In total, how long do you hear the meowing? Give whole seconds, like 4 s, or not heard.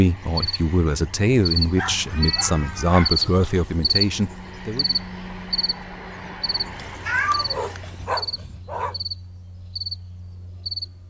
3 s.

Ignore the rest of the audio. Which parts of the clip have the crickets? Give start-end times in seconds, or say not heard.
0.0-11.0.